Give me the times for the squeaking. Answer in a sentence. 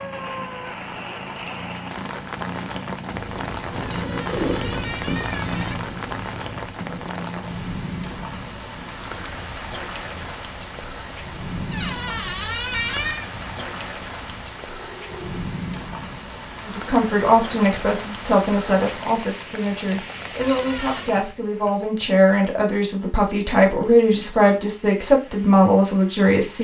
You can hear the squeaking from 3.8 to 5.8 s, from 11.7 to 13.3 s and from 20.4 to 21.1 s.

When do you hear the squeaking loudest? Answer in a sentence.
The loudest moment of the squeaking is at 13 seconds.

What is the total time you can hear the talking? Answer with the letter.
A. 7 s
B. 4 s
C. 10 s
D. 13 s
C.